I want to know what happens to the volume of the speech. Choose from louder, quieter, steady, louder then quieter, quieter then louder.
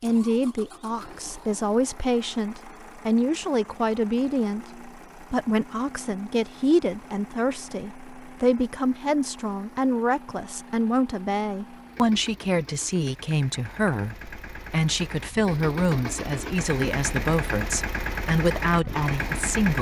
steady.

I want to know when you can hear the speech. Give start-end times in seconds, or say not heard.
0.0-19.7.